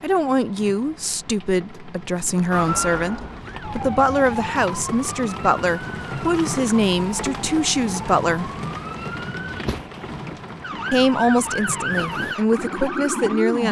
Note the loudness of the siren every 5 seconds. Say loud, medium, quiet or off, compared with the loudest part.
loud, medium, loud.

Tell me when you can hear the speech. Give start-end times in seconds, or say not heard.
0.0-8.5, 10.9-13.6.